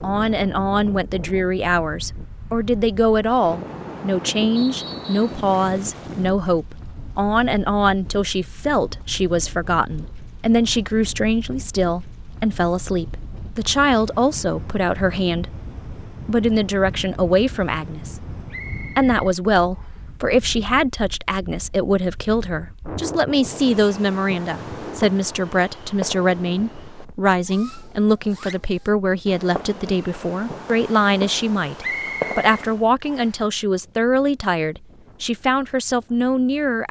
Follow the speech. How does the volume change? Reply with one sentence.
The volume of the speech stays about the same.